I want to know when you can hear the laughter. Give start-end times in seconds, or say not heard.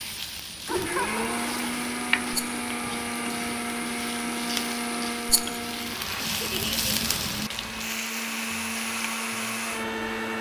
0.7-1.7, 6.4-7.0.